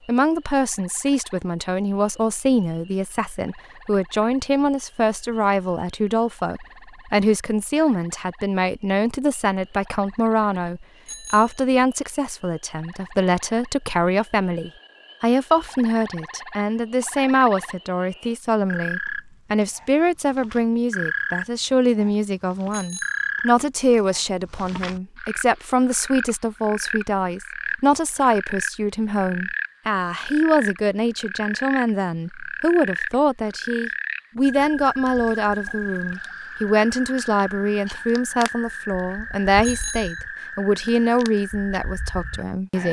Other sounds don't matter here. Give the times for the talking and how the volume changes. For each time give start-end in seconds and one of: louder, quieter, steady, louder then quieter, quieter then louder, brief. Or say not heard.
0.1-42.8 steady.